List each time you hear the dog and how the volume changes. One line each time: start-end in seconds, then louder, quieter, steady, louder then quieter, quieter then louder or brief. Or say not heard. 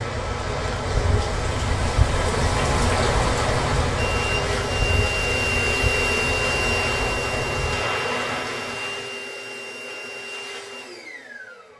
not heard.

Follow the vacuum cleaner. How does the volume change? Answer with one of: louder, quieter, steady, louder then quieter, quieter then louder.
quieter.